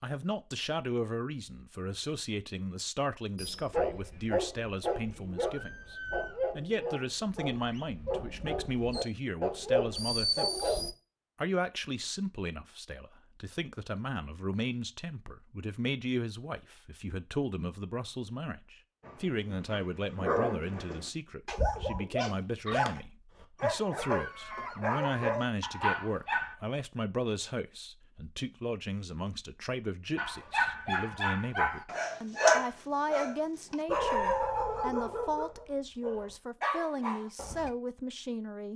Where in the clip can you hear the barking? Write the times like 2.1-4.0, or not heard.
3.4-10.9, 19.1-26.6, 30.1-37.7.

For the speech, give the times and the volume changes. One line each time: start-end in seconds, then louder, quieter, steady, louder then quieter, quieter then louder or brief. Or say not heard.
0.0-38.7 steady.